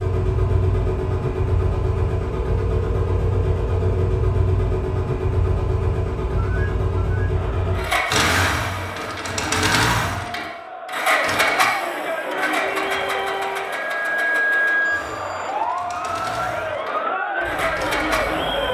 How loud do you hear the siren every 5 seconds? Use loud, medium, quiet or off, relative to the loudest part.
off, off, loud, medium.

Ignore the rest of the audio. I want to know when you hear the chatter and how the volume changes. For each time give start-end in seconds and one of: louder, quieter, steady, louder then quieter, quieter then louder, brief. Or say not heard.
7.3-18.6 louder.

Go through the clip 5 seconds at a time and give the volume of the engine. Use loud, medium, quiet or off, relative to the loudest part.
loud, loud, loud, medium.